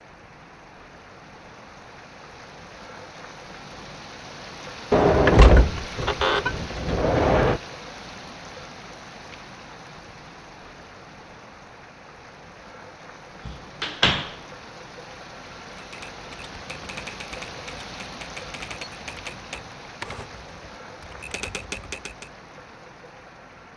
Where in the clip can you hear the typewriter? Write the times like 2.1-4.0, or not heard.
15.8-22.3.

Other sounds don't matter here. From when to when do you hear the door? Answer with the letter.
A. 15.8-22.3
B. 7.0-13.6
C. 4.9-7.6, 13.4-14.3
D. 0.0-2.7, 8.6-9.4
C.